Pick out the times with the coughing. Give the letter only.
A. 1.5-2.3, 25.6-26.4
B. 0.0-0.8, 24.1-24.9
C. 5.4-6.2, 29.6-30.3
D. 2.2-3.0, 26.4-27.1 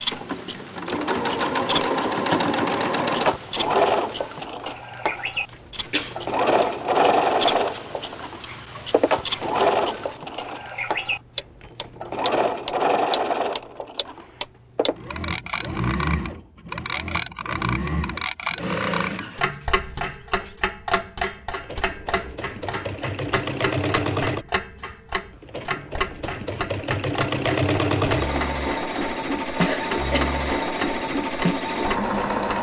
C.